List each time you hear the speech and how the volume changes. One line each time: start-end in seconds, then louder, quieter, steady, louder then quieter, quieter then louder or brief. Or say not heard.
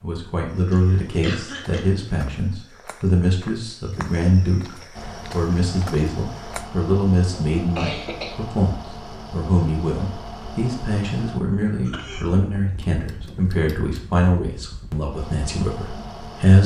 0.0-16.6 steady.